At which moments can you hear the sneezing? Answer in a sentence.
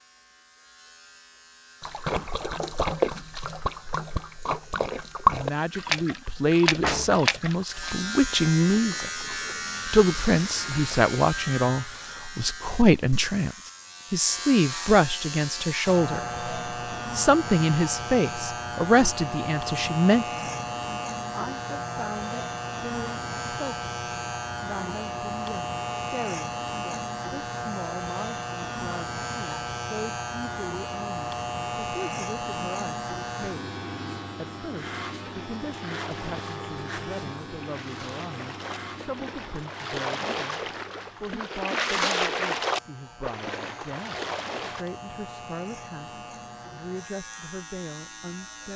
The sneezing can't be heard in this clip.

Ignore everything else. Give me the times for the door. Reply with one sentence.
The door can be heard from 6.8 to 7.5 s.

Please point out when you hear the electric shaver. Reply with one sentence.
You can hear the electric shaver from 0.0 to 48.7 s.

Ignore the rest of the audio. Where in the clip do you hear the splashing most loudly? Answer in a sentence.
The volume of the splashing peaks at 5 seconds.